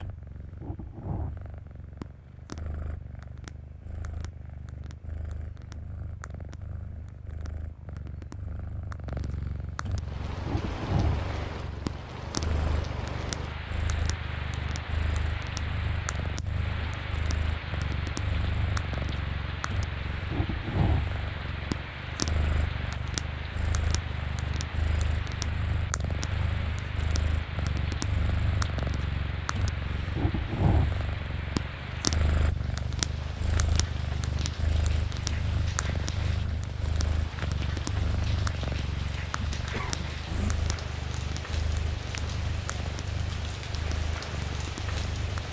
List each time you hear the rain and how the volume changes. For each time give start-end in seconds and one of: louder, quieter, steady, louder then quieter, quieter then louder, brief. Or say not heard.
9.9-45.4 steady.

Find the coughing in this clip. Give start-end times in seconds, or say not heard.
39.5-40.5.